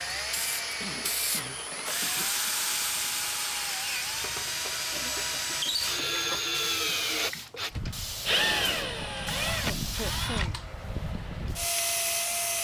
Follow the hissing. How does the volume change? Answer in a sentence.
The loudness of the hissing goes down.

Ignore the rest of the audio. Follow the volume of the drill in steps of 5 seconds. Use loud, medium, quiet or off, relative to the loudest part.
medium, loud, loud.